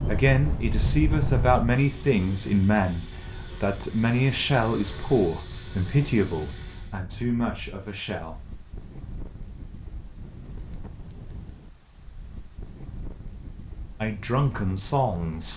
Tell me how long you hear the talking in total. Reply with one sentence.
You can hear the talking for 10 seconds altogether.